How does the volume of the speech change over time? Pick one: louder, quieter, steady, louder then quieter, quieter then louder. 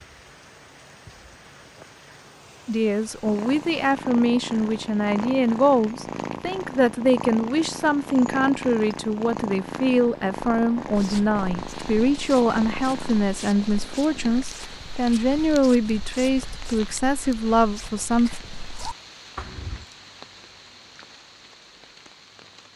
steady.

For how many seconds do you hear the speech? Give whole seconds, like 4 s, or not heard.
16 s.